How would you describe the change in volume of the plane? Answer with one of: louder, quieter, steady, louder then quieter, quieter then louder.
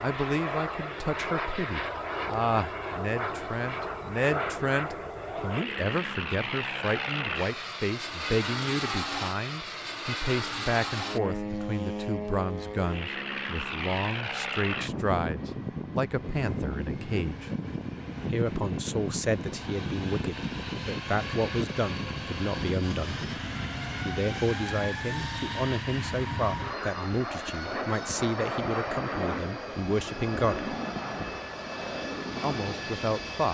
steady.